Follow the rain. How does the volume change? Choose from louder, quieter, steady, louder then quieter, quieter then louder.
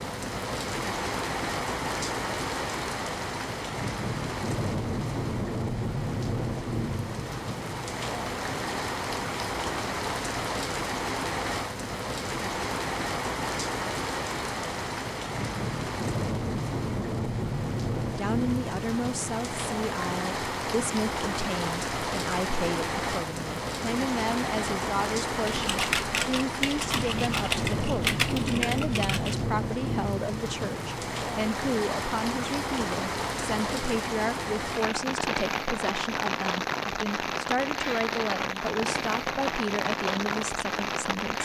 steady.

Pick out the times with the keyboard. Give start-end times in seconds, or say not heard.
25.4-29.4.